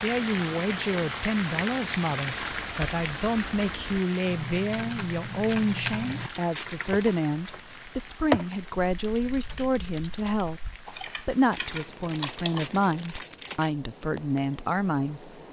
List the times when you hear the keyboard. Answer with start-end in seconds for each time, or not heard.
2.4-7.6, 8.3-12.6.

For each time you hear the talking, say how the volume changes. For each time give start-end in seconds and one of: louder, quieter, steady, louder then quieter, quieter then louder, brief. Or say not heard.
0.0-15.3 steady.